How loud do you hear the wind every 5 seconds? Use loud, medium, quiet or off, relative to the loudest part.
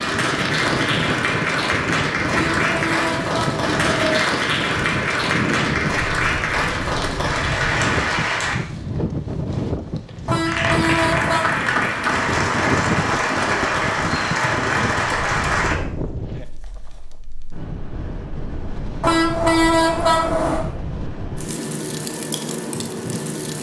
loud, loud, loud, medium, loud.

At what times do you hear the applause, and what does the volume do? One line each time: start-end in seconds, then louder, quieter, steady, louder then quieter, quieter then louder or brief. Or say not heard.
0.0-8.6 steady
10.4-15.8 steady.